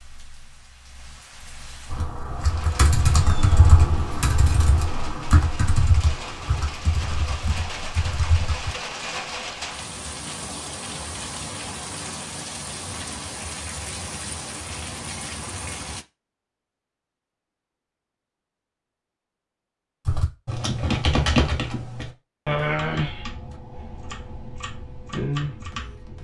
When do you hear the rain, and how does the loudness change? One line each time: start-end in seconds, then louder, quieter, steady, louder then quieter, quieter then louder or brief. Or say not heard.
0.0-16.1 louder.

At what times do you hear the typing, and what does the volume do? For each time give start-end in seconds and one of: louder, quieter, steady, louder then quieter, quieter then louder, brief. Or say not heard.
1.9-8.8 quieter
20.1-26.2 quieter then louder.